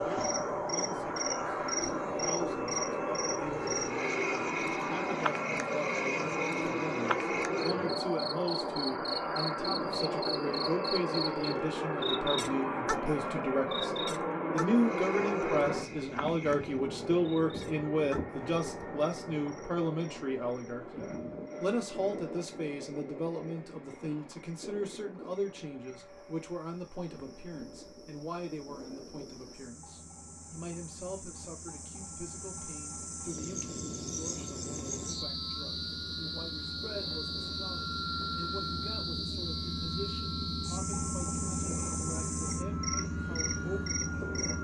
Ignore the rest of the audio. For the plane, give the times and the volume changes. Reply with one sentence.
You can hear the plane from 0.0 to 44.5 s, getting quieter then louder.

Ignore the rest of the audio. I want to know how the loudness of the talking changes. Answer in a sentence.
The loudness of the talking goes up, then down.